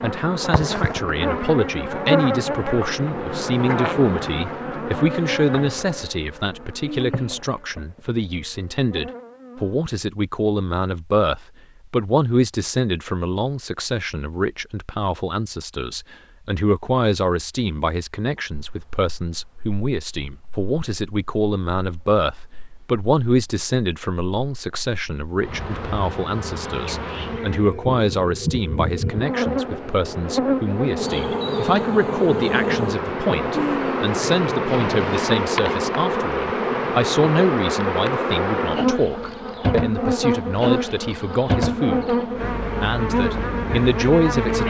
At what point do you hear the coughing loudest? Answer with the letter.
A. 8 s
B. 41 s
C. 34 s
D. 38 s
C.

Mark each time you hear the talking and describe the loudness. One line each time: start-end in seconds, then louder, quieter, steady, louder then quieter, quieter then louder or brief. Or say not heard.
0.0-42.1 steady
42.8-44.6 brief.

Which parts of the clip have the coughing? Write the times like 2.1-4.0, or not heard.
6.8-7.6, 33.5-34.1.